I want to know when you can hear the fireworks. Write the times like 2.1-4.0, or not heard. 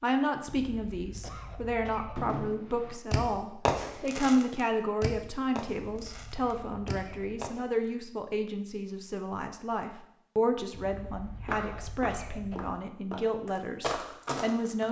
2.1-7.7.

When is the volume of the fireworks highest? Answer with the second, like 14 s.
4 s.